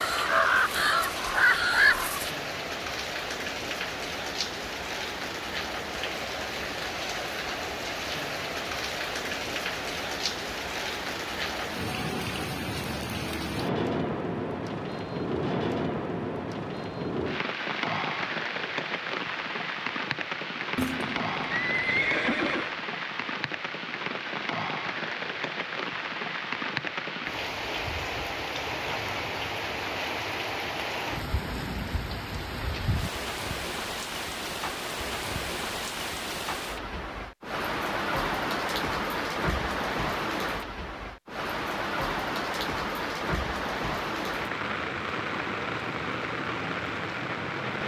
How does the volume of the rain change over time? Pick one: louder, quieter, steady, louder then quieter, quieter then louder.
steady.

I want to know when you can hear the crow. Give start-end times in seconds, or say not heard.
0.0-2.3.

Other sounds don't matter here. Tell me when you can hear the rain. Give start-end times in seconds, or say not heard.
0.0-47.8.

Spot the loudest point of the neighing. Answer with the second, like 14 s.
22 s.